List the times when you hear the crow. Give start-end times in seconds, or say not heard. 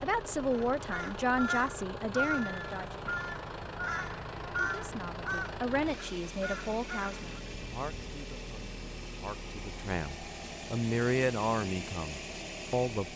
0.5-7.4.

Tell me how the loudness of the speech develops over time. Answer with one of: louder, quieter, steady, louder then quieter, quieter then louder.
quieter then louder.